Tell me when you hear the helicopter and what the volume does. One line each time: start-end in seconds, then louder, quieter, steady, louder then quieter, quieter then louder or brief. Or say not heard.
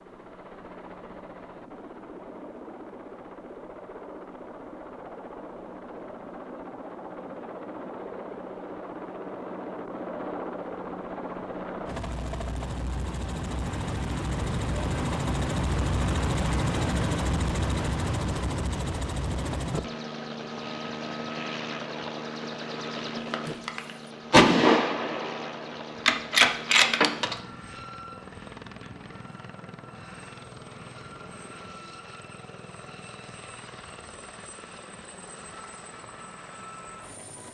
0.0-37.5 louder then quieter.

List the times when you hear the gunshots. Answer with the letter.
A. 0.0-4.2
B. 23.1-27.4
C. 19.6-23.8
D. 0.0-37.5
B.